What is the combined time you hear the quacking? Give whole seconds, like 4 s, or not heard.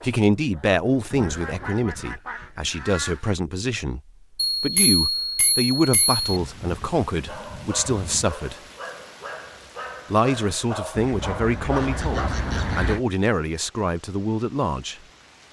6 s.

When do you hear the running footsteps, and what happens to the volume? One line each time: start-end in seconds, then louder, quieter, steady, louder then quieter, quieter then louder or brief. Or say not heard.
not heard.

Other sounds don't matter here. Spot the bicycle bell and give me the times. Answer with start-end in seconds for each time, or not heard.
4.3-6.2.